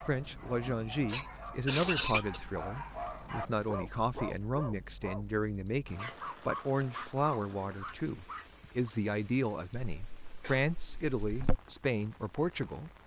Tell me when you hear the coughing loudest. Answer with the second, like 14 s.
2 s.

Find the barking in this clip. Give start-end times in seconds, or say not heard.
0.0-8.9.